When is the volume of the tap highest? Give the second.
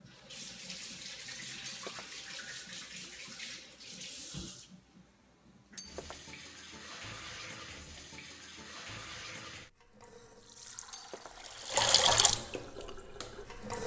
12 s.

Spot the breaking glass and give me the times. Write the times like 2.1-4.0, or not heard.
1.6-2.1, 5.8-6.3, 10.9-11.5.